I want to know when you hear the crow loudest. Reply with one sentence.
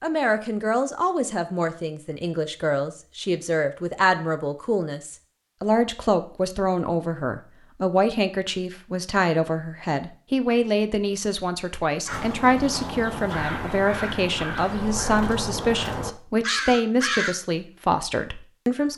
The volume of the crow peaks at 17 seconds.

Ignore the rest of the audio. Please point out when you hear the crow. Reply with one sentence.
The crow can be heard from 12.1 to 17.4 s.